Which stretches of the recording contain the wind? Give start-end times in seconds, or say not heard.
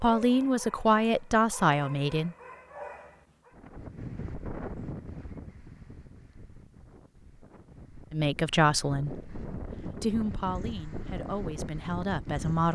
3.5-12.6.